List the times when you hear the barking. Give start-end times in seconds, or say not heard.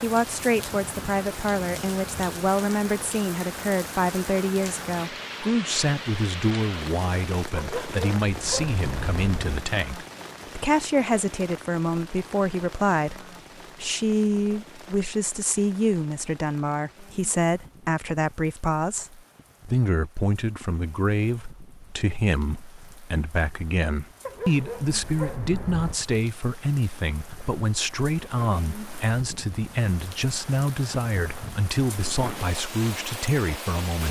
7.5-9.6, 24.2-26.0.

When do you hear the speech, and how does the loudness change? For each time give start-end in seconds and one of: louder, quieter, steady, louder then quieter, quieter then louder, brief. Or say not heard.
0.0-34.0 steady.